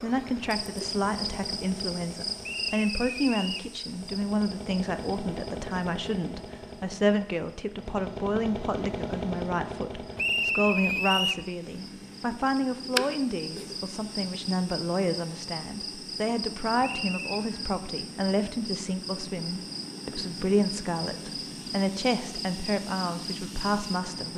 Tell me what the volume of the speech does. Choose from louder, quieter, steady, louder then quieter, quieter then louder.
steady.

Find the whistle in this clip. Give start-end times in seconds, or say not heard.
2.4-3.7, 10.2-11.4, 16.8-17.4.